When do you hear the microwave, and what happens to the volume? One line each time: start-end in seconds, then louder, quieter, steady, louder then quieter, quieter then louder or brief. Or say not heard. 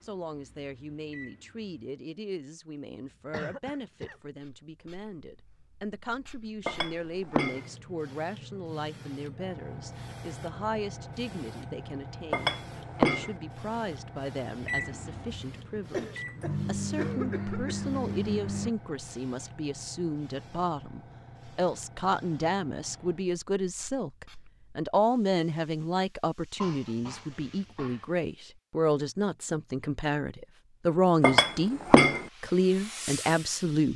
0.0-1.9 brief
14.6-18.7 louder.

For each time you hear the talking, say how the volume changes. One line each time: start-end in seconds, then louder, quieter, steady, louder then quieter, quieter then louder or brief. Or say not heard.
0.0-33.9 louder.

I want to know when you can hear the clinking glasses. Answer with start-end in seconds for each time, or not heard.
6.7-7.7, 12.3-13.3, 31.2-32.2.